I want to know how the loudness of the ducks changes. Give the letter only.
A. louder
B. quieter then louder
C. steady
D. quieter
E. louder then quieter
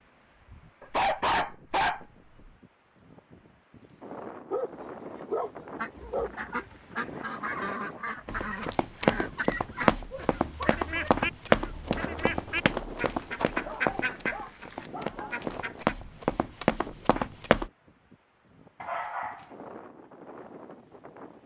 C.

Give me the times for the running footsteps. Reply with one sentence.
You can hear the running footsteps from 8.2 to 17.7 s.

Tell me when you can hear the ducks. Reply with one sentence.
You can hear the ducks from 5.8 to 15.9 s.